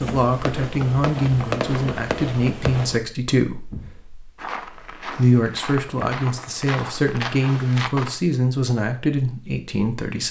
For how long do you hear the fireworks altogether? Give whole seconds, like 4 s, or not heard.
3 s.